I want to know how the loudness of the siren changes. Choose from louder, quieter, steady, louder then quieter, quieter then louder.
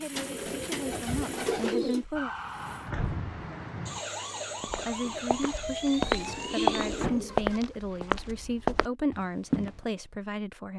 louder.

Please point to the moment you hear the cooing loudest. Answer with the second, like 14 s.
2 s.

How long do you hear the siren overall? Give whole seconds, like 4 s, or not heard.
5 s.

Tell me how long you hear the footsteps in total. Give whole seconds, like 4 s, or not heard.
5 s.